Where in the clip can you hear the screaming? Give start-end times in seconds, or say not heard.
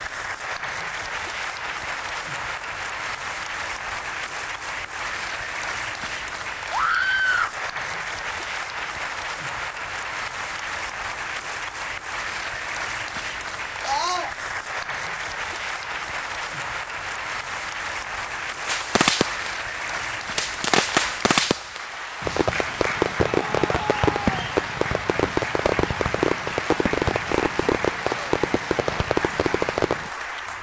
6.7-7.5, 13.8-14.3, 23.2-24.4.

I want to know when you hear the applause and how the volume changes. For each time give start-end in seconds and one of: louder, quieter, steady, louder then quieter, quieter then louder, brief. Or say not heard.
0.0-30.5 steady.